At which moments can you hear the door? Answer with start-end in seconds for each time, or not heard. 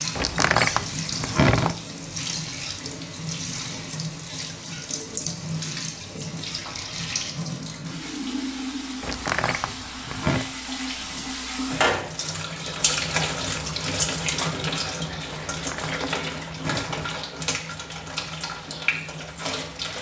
0.1-1.8, 9.0-10.5, 15.4-17.1.